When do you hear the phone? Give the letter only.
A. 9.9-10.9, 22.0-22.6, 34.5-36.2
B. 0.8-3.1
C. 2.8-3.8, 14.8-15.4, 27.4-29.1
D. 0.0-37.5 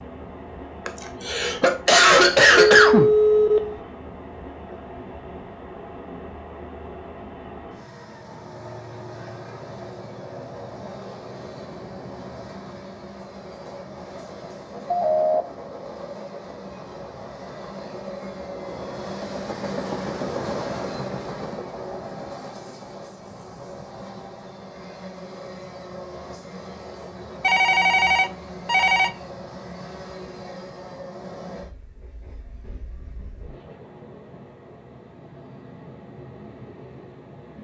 C.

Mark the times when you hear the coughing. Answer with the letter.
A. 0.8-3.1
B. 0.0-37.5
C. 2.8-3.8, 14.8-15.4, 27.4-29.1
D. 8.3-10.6
A.